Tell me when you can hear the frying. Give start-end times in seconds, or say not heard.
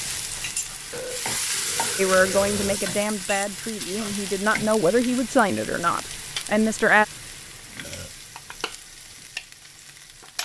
0.0-10.4.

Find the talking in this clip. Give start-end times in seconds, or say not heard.
1.9-7.0.